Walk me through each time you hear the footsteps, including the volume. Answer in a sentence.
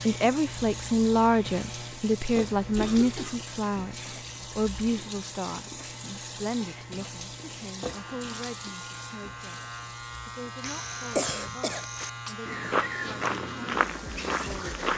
You can hear the footsteps from 10.6 to 14.9 s, getting louder.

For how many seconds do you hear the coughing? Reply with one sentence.
The coughing can be heard for 2 seconds in total.